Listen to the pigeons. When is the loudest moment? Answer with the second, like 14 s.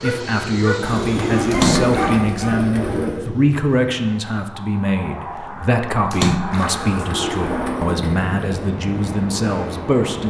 2 s.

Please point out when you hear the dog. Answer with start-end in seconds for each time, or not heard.
0.0-2.5.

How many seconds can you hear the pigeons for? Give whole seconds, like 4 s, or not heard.
4 s.